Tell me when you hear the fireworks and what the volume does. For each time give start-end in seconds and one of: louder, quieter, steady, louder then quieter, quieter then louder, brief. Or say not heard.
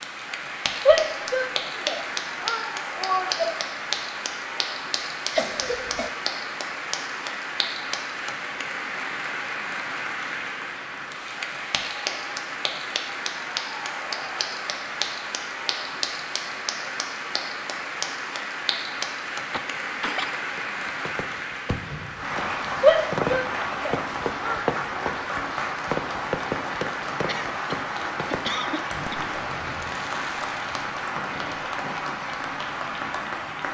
20.6-32.1 louder then quieter.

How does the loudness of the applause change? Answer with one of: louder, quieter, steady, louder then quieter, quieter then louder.
steady.